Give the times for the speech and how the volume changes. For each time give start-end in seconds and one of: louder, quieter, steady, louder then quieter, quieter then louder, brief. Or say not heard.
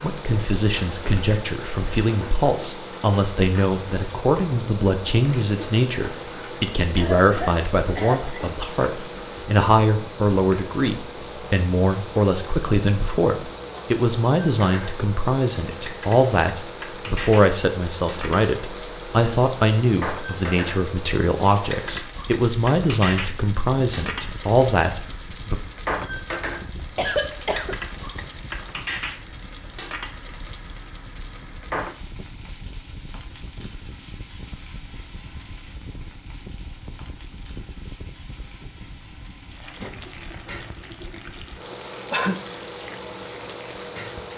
0.0-25.6 steady.